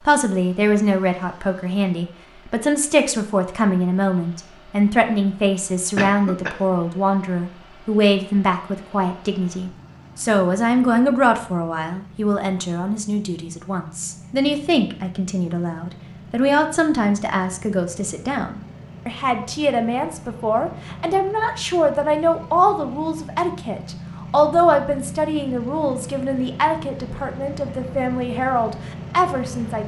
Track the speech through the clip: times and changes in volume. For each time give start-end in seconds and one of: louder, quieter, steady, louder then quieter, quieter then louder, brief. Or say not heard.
0.1-29.8 steady.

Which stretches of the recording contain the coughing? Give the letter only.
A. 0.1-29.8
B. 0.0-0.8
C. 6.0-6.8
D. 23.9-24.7
C.